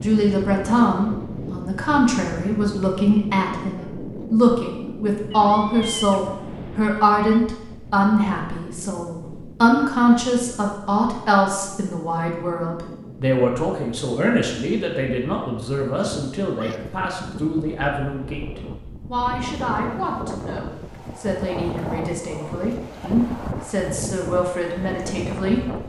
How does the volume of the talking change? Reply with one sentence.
The volume of the talking goes down.